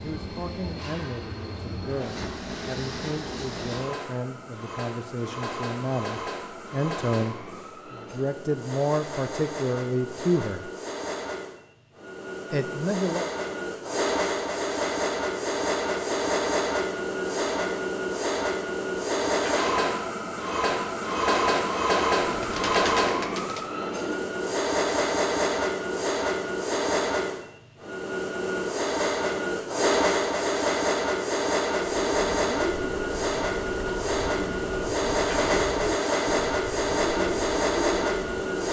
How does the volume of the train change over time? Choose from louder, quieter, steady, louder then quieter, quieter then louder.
louder.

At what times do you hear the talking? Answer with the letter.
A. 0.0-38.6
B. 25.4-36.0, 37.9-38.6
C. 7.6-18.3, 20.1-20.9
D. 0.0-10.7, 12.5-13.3
D.